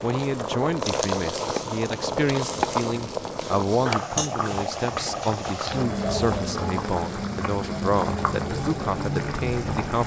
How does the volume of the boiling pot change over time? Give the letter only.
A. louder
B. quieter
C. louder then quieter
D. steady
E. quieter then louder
D.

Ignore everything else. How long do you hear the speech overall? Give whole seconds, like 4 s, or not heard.
10 s.